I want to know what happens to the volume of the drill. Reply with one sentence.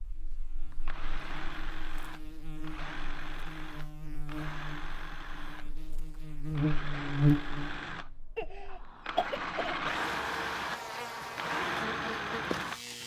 The loudness of the drill goes up.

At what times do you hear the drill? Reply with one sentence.
The drill can be heard from 0.7 to 12.8 s.